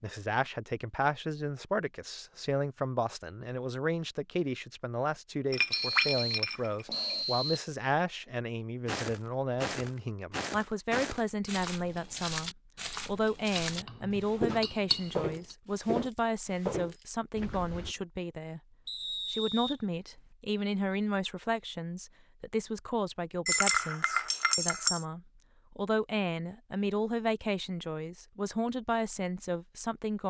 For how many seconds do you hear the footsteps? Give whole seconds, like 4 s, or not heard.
9 s.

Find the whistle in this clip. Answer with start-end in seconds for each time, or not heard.
5.7-7.6, 18.9-20.2.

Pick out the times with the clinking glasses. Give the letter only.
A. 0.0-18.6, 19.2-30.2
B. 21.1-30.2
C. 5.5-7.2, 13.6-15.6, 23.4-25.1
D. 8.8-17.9
C.